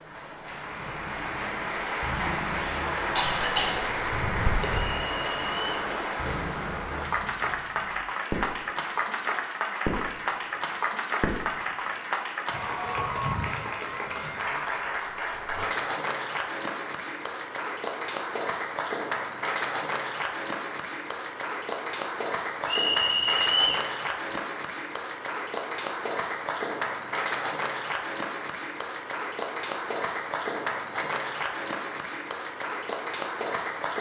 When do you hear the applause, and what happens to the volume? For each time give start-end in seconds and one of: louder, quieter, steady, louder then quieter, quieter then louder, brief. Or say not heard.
0.0-33.9 steady.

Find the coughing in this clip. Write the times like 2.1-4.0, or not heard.
3.1-5.0.